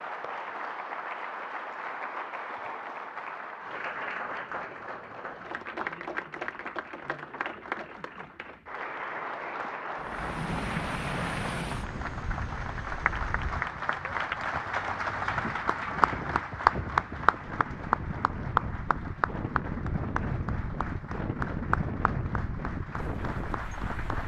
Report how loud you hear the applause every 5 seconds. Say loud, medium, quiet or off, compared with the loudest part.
medium, medium, medium, loud, medium.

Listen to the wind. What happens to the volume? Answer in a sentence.
The loudness of the wind goes down, then up.